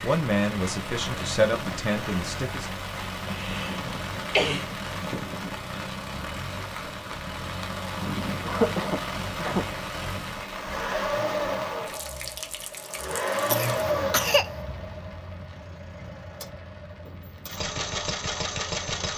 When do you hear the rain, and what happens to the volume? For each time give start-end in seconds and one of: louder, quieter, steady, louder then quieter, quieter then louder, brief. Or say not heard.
0.0-19.1 quieter.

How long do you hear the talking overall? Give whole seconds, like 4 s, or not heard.
3 s.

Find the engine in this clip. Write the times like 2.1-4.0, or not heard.
0.0-19.1.